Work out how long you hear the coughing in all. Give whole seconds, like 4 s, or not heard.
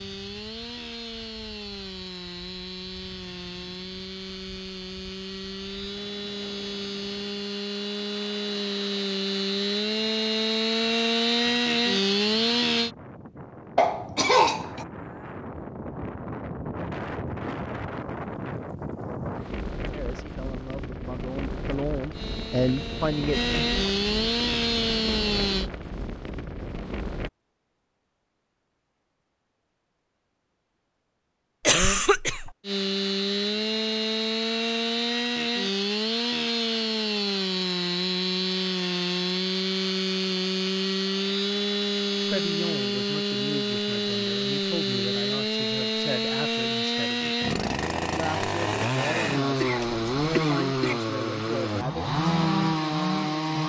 3 s.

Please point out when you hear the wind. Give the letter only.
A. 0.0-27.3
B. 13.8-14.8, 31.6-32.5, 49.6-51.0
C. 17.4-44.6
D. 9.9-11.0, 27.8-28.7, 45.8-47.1
A.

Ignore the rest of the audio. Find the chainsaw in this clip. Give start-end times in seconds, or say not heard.
0.0-12.9, 22.1-25.7, 32.6-53.6.